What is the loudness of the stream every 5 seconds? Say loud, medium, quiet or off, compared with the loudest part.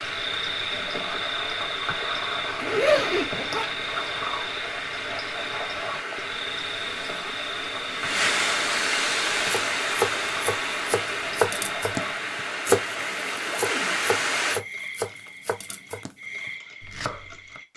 medium, loud, loud, off.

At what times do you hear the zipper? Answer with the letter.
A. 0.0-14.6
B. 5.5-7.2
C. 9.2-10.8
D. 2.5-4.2
D.